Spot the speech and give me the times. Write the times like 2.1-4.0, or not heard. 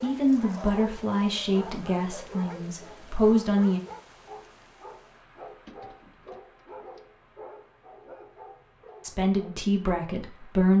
0.0-3.8, 9.0-10.7.